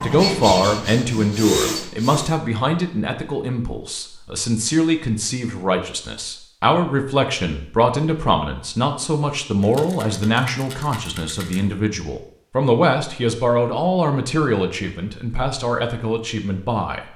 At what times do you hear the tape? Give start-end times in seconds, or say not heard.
not heard.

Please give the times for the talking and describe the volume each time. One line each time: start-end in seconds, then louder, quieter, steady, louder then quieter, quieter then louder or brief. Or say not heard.
0.0-17.0 steady.